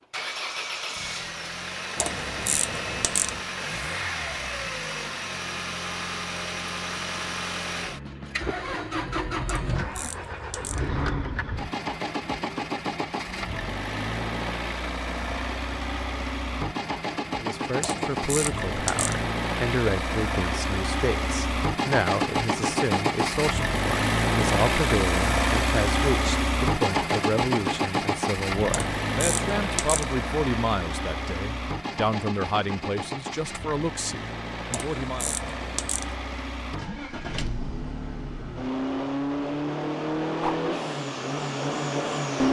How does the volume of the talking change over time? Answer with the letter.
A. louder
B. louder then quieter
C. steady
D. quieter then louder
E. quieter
C.